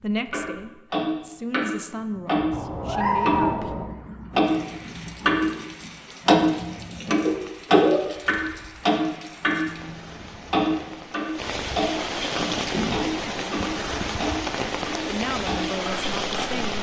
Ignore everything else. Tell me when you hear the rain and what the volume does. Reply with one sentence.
The rain can be heard from 4.4 to 16.7 s, getting louder.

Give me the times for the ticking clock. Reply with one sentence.
The ticking clock can be heard from 0.3 to 5.5 s and from 6.2 to 16.6 s.